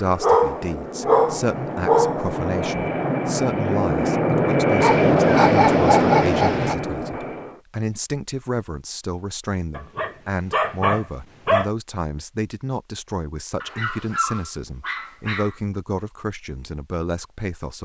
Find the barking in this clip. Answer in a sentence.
You can hear the barking from 0.2 to 2.2 s, from 4.8 to 6.8 s, from 9.8 to 11.7 s and from 13.6 to 15.6 s.